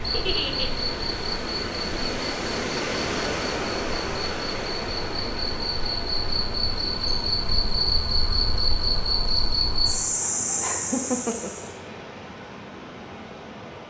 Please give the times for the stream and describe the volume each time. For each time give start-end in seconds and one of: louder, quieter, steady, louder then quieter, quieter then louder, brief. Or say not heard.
0.0-13.8 quieter.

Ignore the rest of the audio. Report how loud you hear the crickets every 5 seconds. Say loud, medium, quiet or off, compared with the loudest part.
medium, loud, loud.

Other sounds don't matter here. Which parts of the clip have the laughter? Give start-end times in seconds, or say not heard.
0.1-0.7, 10.6-11.7.